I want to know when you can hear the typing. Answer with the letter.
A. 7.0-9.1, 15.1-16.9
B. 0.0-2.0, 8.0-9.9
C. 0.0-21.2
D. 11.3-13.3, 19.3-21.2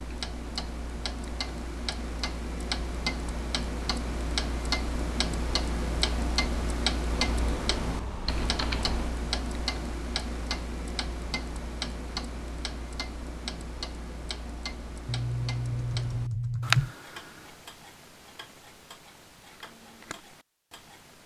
A.